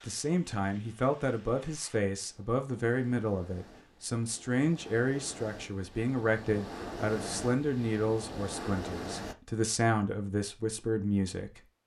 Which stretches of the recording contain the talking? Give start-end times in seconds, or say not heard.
0.0-11.6.